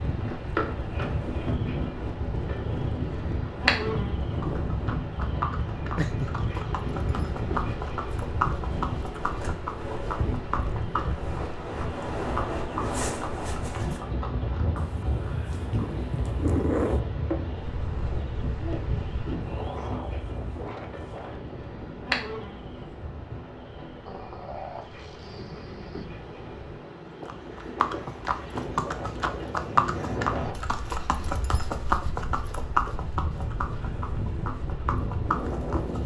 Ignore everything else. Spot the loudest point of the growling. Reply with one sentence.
The volume of the growling peaks at 17 seconds.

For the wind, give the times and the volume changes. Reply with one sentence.
The wind can be heard from 0.0 to 36.0 s, getting quieter then louder.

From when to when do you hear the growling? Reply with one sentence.
The growling can be heard from 6.0 to 6.5 s, from 14.8 to 17.0 s and from 24.1 to 26.1 s.